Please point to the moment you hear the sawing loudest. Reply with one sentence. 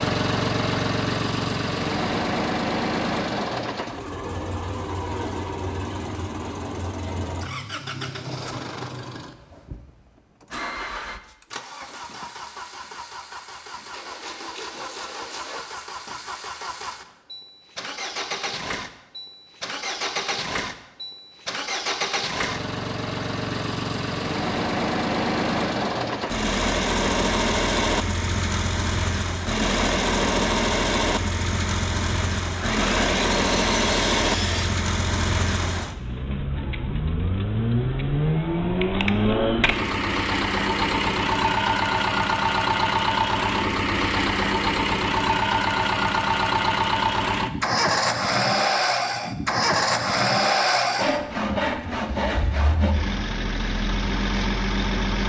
The loudest moment of the sawing is at 52 seconds.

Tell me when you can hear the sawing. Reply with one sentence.
You can hear the sawing from 13.9 to 15.7 s, from 32.5 to 34.7 s and from 51.0 to 53.0 s.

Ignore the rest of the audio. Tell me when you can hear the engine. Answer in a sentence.
You can hear the engine from 0.0 to 55.2 s.